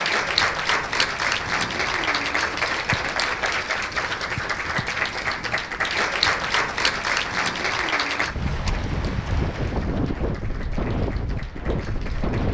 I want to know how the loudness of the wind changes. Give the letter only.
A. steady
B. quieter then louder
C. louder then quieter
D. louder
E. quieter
D.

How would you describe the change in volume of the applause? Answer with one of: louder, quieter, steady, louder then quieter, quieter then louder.
quieter.